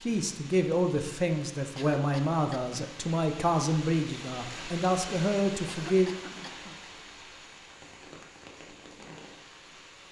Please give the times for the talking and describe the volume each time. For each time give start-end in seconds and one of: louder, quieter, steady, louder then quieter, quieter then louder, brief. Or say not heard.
0.0-6.1 steady.